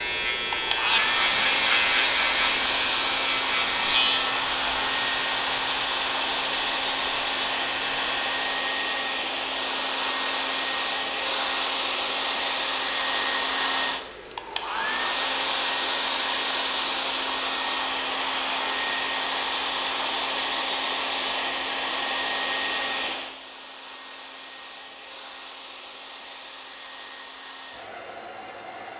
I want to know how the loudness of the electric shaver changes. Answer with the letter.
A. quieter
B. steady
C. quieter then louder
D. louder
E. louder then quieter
A.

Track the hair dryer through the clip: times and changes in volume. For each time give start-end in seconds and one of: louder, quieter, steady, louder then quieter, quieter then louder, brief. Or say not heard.
0.0-28.9 quieter.